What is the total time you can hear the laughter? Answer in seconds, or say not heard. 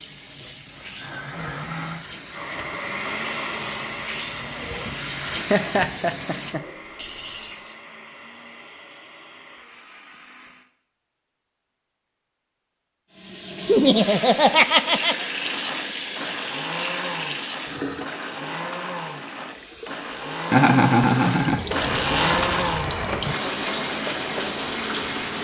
4 s.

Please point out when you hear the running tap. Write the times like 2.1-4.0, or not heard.
0.0-7.8, 13.1-25.4.